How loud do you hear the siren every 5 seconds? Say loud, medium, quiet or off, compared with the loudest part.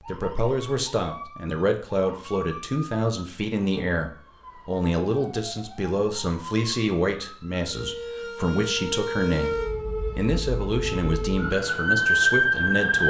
quiet, medium, loud.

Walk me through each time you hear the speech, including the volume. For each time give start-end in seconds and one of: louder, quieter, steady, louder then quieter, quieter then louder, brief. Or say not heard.
0.1-13.0 steady.